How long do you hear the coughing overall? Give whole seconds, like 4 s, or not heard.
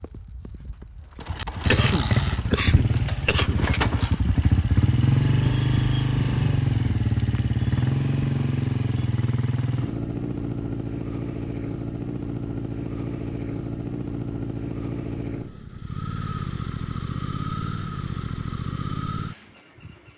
2 s.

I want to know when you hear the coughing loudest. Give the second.
2 s.